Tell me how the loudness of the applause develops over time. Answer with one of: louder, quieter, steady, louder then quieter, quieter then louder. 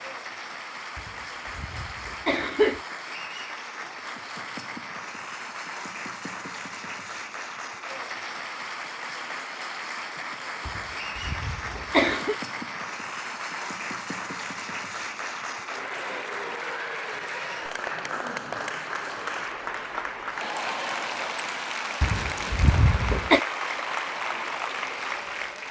louder.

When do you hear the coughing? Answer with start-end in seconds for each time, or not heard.
0.9-2.8, 10.7-12.3, 22.0-23.4.